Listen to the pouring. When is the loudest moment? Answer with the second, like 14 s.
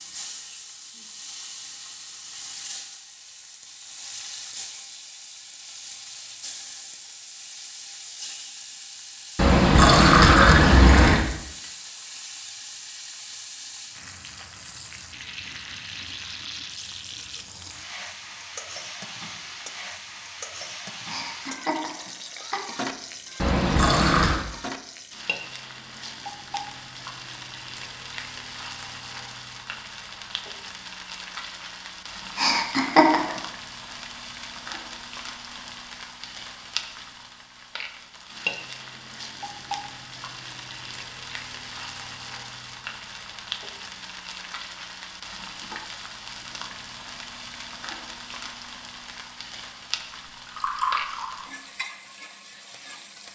10 s.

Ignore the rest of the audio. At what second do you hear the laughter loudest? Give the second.
33 s.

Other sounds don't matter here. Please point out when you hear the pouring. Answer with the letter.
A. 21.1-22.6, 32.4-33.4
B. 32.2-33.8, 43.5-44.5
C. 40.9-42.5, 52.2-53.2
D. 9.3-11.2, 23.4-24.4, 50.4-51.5
D.